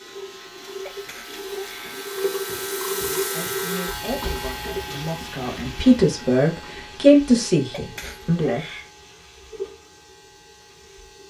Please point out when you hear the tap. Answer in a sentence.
The tap can be heard from 0.0 to 11.2 s.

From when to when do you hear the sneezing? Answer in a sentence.
You can hear the sneezing from 0.8 to 2.0 s and from 7.7 to 8.9 s.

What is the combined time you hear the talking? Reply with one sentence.
You can hear the talking for 6 seconds altogether.